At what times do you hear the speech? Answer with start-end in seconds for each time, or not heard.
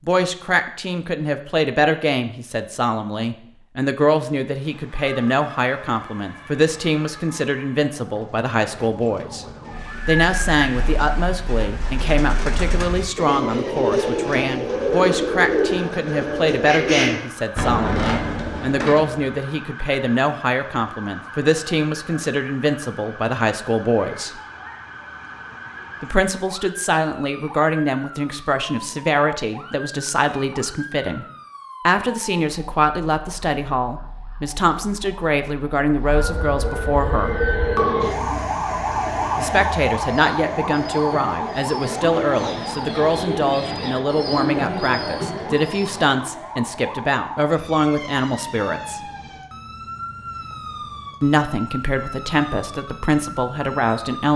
0.1-9.4, 10.1-24.3, 26.0-31.2, 31.9-37.4, 39.4-49.0, 51.2-54.3.